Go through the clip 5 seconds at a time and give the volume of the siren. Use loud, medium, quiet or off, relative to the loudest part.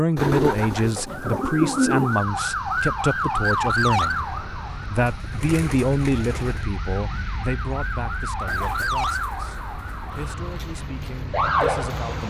loud, medium, loud.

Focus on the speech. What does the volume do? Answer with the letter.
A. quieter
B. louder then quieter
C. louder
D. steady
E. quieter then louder
A.